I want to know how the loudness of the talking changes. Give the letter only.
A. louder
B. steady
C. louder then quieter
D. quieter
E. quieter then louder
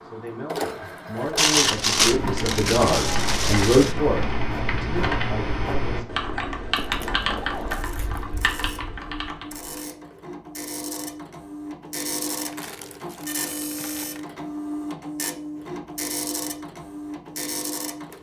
C.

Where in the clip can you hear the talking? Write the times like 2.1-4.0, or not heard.
0.1-6.0.